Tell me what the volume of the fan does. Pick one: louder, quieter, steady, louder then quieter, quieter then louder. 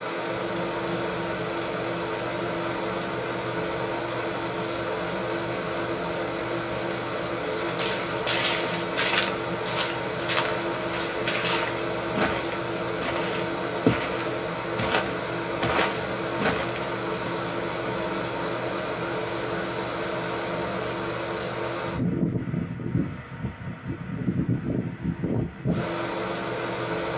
steady.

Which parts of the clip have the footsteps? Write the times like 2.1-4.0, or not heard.
7.4-17.4.